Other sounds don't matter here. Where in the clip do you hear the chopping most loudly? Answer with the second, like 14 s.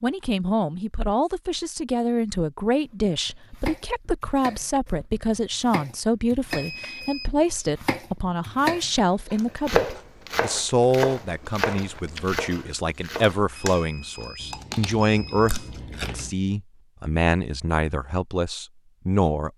10 s.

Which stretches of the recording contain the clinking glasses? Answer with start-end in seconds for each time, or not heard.
not heard.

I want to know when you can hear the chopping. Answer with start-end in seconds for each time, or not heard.
2.8-13.4.